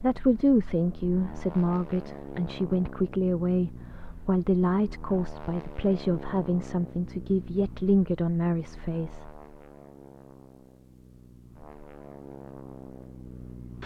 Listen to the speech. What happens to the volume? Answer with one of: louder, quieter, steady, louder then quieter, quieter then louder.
steady.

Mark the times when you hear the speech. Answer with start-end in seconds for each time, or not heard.
0.0-9.3.